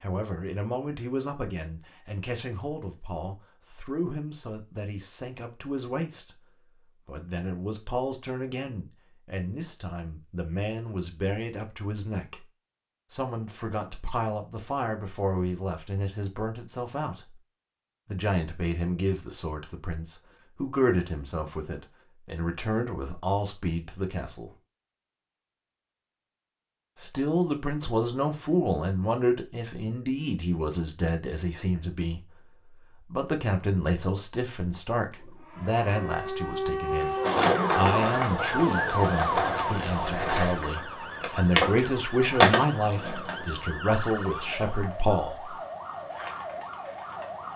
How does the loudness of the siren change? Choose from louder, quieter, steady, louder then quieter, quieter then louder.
quieter.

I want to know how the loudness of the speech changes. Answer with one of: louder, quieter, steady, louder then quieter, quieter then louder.
louder.